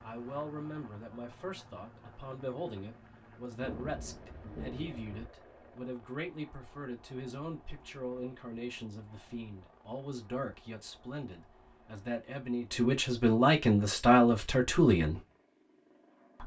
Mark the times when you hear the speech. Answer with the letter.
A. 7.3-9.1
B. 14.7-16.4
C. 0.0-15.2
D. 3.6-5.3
C.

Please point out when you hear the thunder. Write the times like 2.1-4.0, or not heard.
3.6-5.3.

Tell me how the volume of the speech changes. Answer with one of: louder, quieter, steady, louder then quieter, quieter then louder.
louder.